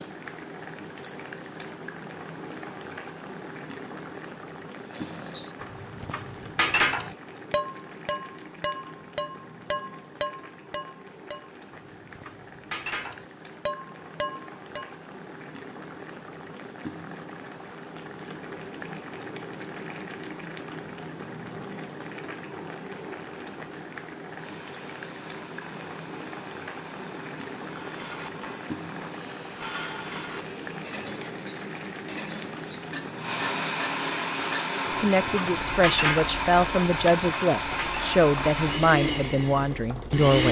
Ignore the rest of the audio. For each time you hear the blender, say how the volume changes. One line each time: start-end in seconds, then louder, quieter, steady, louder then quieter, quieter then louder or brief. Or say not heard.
24.4-40.4 louder.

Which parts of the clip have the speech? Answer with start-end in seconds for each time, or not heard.
34.9-40.4.